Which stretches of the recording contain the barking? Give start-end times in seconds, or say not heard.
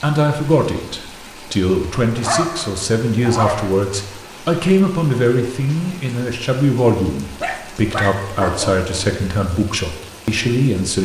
2.1-3.7, 7.4-9.2.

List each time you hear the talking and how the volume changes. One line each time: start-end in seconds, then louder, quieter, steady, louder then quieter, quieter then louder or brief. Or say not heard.
0.0-11.0 steady.